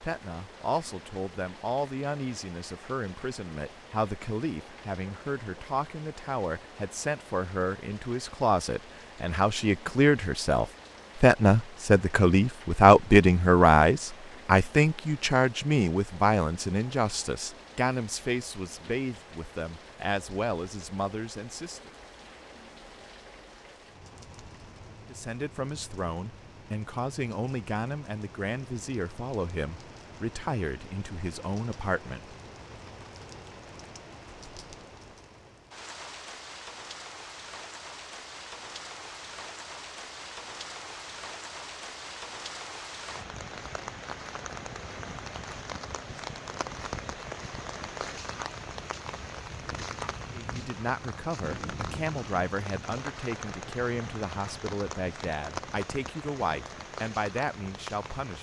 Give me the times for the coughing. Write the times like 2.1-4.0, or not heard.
not heard.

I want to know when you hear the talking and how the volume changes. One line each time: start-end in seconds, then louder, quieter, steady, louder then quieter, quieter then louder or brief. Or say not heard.
0.0-21.9 louder then quieter
25.1-32.4 steady
50.3-58.3 steady.